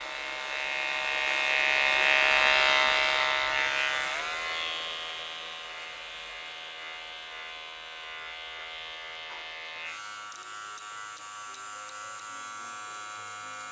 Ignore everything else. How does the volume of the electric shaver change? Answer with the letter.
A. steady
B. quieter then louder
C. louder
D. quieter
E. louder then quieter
D.